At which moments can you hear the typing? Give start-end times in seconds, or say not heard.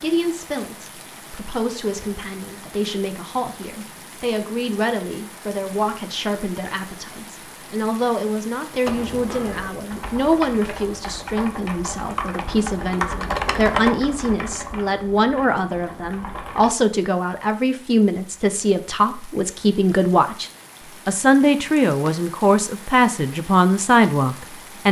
8.8-16.8.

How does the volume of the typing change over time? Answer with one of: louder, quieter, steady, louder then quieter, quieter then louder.
louder then quieter.